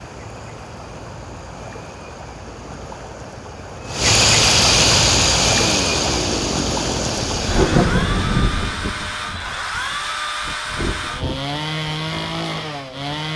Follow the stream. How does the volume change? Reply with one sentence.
The loudness of the stream goes up, then down.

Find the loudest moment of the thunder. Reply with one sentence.
The loudest moment of the thunder is at 8 seconds.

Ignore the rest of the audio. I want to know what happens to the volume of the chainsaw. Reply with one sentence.
The loudness of the chainsaw stays about the same.